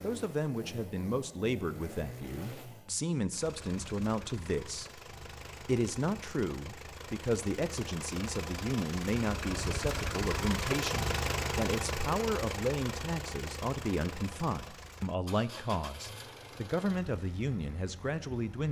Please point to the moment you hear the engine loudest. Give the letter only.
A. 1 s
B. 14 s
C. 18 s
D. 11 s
D.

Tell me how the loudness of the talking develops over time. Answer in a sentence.
The loudness of the talking stays about the same.